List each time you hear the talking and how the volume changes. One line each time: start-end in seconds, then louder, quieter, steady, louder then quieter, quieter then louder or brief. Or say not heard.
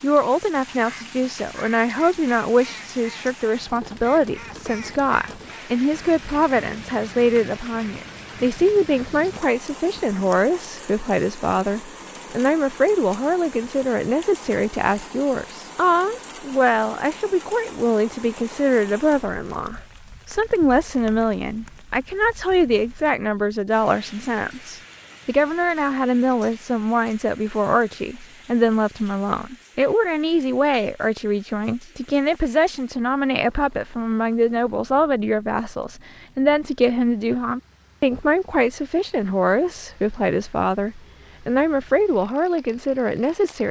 0.0-43.6 steady.